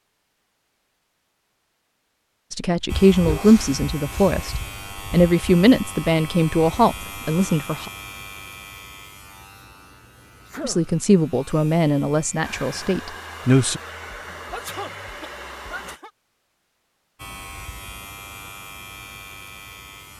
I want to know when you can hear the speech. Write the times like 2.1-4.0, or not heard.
2.5-7.9, 10.6-13.8.